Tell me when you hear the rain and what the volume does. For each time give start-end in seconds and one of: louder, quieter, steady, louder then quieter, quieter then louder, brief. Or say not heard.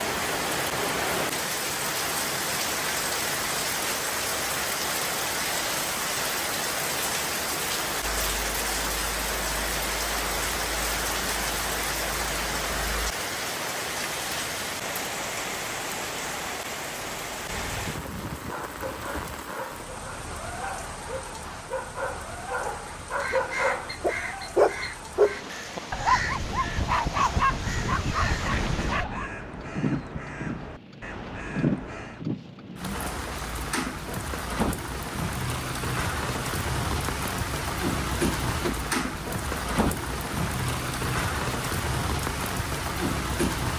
0.0-43.7 quieter then louder.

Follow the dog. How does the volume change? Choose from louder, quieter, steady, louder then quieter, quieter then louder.
louder.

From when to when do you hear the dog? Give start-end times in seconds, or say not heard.
18.4-29.3.